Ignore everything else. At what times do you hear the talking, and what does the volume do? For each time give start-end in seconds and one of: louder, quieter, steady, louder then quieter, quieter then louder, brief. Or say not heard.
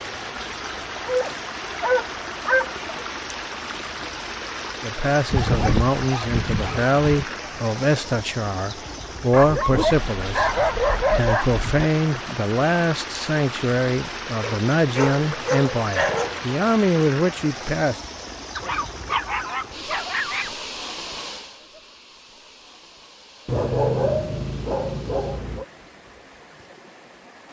4.8-18.0 steady.